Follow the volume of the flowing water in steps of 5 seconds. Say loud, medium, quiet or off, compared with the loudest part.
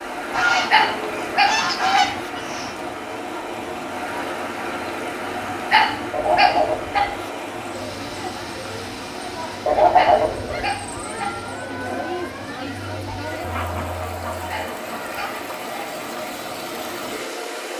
loud, loud, medium, loud.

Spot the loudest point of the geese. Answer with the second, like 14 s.
10 s.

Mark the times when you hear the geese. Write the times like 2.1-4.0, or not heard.
0.3-2.8, 6.1-7.2, 9.7-10.7, 13.4-15.4.